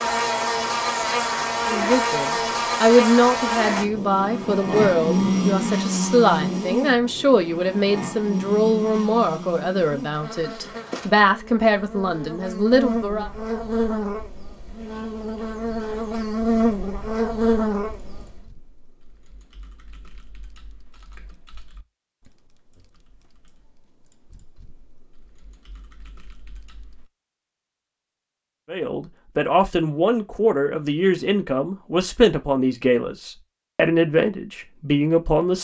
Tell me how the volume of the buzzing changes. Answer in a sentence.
The volume of the buzzing goes down, then up.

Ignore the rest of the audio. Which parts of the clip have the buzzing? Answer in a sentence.
You can hear the buzzing from 0.0 to 18.4 s.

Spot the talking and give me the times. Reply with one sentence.
You can hear the talking from 1.6 to 13.3 s and from 28.7 to 35.6 s.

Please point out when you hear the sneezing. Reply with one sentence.
The sneezing can't be heard in this clip.